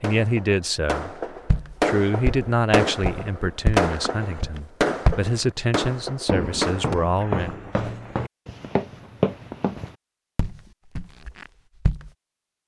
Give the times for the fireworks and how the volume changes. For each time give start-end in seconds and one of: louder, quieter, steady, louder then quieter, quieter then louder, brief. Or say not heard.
0.0-7.0 louder then quieter.